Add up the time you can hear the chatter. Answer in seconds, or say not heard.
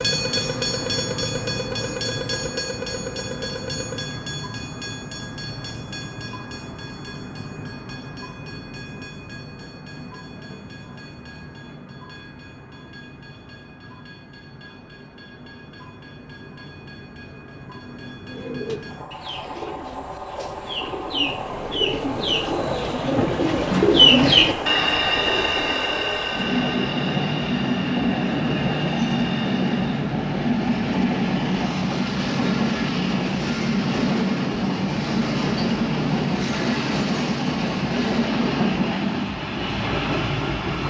not heard.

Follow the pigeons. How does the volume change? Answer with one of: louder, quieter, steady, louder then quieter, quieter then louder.
louder then quieter.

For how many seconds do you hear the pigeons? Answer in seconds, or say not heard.
12 s.